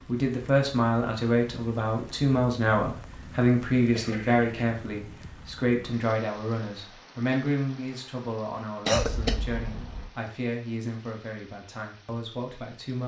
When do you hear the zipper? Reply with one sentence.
You can't hear the zipper here.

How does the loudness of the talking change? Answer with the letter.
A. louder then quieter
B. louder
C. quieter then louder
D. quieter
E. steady
D.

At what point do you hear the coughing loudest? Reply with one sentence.
The volume of the coughing peaks at 9 seconds.